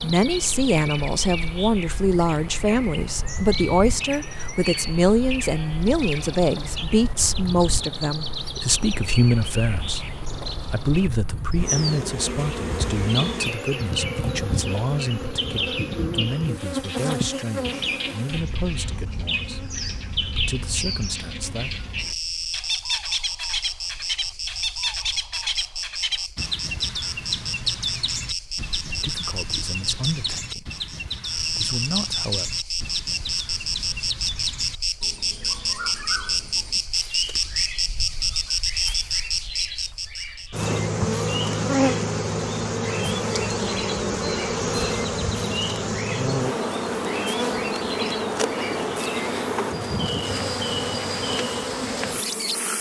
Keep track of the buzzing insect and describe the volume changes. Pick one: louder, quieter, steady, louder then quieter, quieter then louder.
louder.